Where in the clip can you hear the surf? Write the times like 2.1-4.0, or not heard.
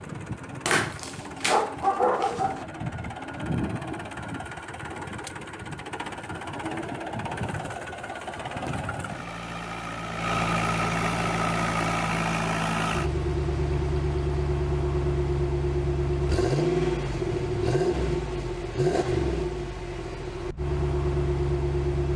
not heard.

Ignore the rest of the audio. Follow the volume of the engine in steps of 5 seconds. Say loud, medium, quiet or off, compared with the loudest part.
medium, medium, loud, loud, loud.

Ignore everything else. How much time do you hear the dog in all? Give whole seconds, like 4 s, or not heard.
2 s.